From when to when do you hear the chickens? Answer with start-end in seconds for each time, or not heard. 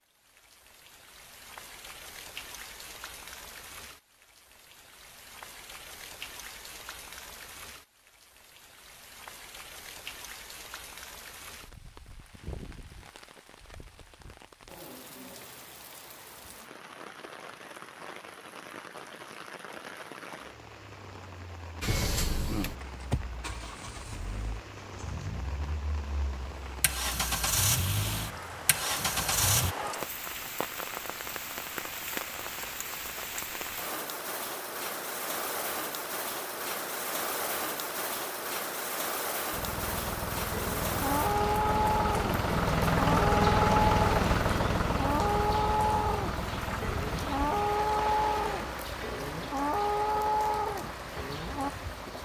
not heard.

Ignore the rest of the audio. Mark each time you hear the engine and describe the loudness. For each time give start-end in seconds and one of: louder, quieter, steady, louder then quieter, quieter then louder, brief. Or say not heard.
21.8-29.8 quieter then louder
39.5-52.1 louder then quieter.